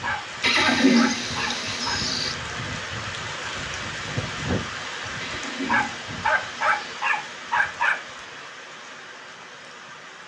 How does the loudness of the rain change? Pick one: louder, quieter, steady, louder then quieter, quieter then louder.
quieter.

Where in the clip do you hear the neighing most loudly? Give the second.
1 s.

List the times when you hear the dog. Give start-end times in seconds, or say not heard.
0.0-2.0, 5.7-8.0.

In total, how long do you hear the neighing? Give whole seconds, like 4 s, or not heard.
4 s.